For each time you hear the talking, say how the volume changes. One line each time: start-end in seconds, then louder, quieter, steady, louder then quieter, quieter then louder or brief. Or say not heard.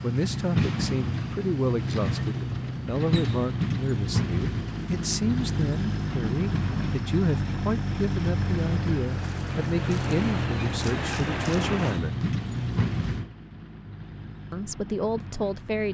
0.0-12.2 steady
14.5-15.9 brief.